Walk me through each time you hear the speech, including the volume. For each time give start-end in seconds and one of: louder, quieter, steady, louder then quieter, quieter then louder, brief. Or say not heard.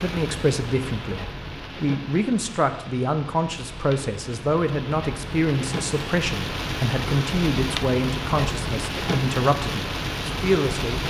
0.0-11.0 steady.